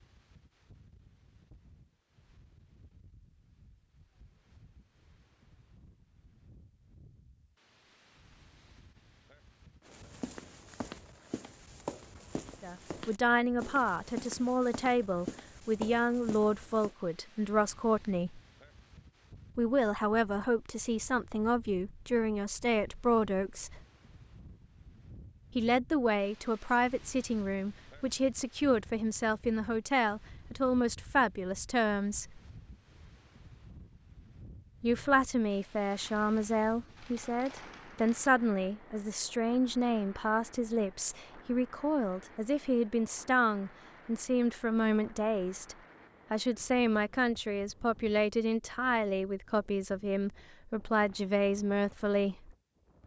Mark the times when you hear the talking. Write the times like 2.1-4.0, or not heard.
12.6-18.4, 19.6-23.8, 25.6-32.4, 34.8-52.5.